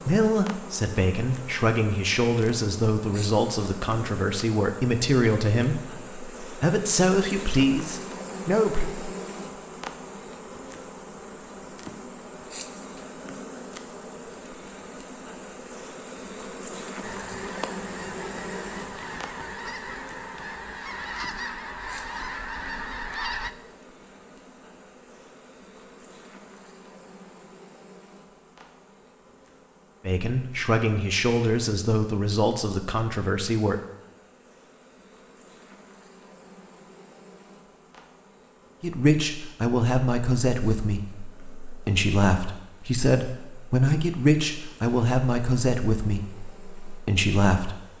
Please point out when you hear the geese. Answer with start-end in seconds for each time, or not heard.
17.0-23.5.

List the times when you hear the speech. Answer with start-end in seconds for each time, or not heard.
0.1-8.9, 30.1-33.8, 38.8-47.8.